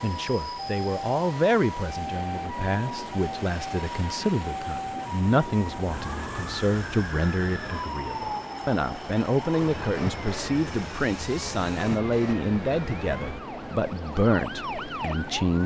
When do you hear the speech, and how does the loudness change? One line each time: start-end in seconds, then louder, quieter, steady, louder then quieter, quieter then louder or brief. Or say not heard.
0.0-15.6 steady.